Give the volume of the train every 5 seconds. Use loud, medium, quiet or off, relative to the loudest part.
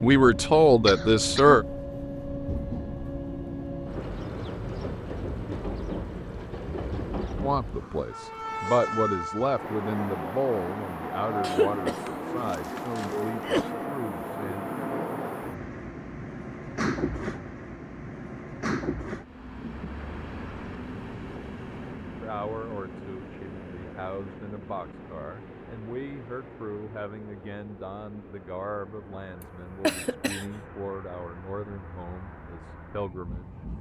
loud, loud, loud, loud, medium, quiet, quiet.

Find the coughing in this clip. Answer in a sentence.
The coughing can be heard from 0.8 to 1.6 s, from 11.4 to 13.7 s and from 29.4 to 30.4 s.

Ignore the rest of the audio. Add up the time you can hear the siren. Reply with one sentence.
The siren can't be heard in this clip.